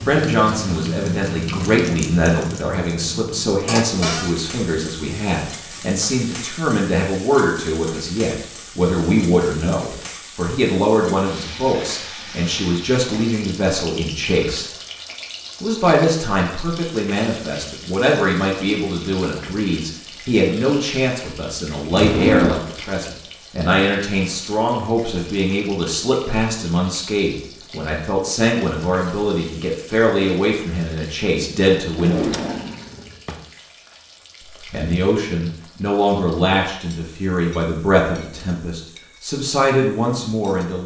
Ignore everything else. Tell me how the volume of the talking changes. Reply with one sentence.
The loudness of the talking stays about the same.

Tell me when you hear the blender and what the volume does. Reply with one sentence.
You can't hear the blender here.